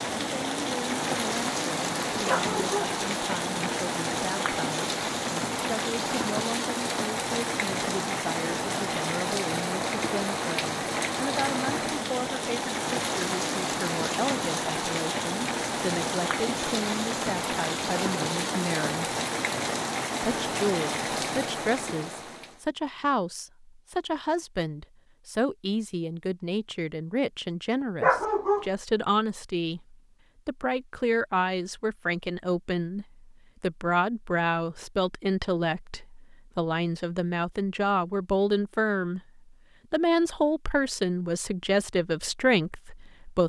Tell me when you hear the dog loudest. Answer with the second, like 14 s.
28 s.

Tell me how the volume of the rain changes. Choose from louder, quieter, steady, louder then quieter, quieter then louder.
steady.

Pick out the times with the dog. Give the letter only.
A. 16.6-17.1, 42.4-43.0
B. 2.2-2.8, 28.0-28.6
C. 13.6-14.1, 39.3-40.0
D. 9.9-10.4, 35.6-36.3
B.